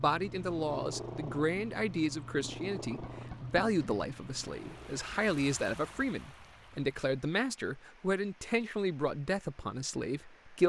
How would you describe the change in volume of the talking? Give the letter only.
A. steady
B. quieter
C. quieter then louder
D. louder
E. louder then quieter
A.